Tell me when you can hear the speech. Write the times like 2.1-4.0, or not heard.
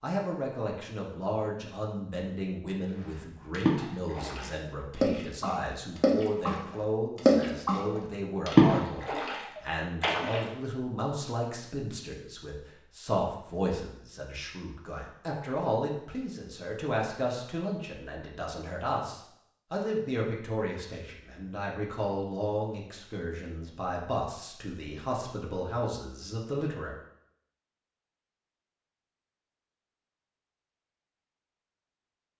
0.0-26.9.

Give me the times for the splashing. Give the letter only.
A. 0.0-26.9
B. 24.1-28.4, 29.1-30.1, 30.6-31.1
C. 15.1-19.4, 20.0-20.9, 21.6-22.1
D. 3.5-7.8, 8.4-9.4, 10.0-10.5
D.